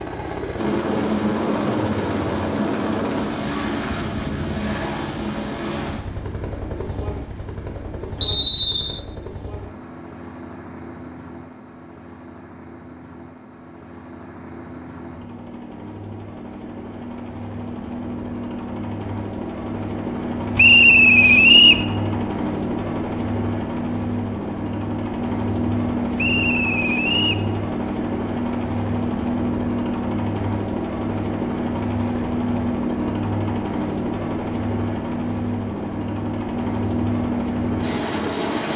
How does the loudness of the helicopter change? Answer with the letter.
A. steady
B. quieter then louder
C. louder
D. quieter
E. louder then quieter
B.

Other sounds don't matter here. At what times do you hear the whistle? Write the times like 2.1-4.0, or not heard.
8.2-9.0, 20.6-21.9, 26.1-27.4.